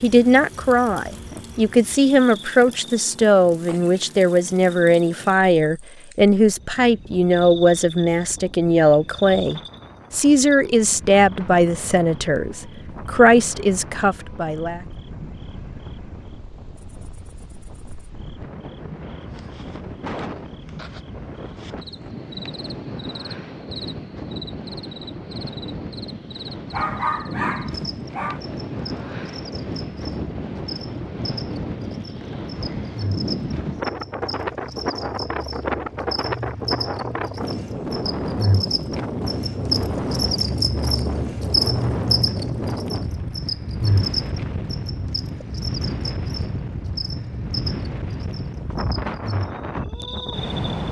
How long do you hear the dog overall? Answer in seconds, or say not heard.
2 s.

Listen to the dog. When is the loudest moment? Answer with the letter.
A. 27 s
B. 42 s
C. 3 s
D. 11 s
A.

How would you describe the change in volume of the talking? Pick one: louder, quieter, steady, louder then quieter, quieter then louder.
steady.